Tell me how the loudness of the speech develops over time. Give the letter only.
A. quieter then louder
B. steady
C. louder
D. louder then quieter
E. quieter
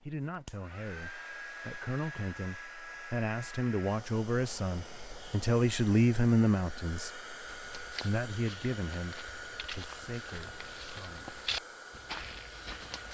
D.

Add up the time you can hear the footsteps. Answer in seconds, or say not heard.
6 s.